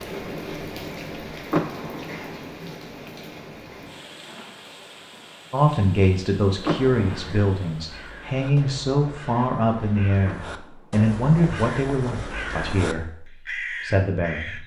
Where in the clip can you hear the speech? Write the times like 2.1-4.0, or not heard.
5.5-14.6.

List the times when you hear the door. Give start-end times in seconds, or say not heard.
1.5-2.4, 6.7-7.5, 10.2-11.1.